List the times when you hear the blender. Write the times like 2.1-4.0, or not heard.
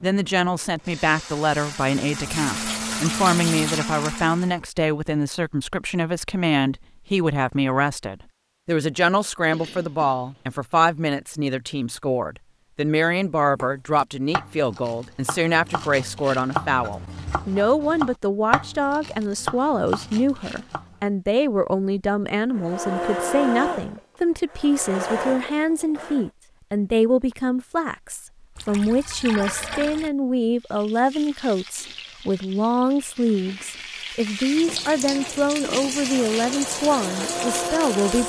0.0-4.5, 22.5-26.3, 34.9-38.2.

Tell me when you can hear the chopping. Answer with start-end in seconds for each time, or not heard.
13.6-21.1.